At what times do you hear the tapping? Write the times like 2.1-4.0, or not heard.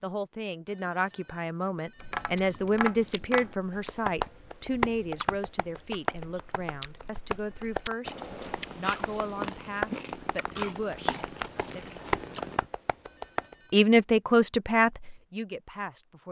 2.0-13.6.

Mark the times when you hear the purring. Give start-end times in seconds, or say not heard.
8.0-12.6.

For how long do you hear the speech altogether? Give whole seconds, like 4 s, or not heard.
14 s.